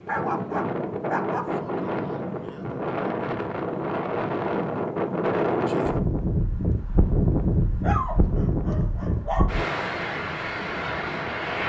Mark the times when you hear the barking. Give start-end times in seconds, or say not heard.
0.1-1.6, 7.8-9.6.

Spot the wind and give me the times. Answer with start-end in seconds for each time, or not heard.
0.0-11.6.